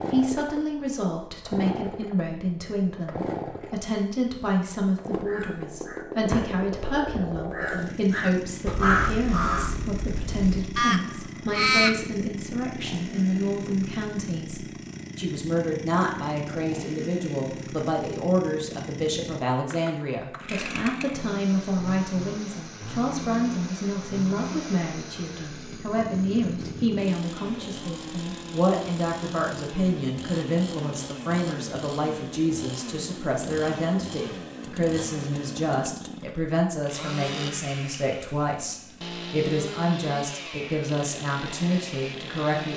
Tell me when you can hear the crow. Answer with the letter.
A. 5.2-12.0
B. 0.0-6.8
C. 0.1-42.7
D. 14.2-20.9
A.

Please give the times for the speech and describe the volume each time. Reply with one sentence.
You can hear the speech from 0.1 to 42.7 s, at a steady volume.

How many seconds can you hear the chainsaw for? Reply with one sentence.
The chainsaw can be heard for 43 seconds in total.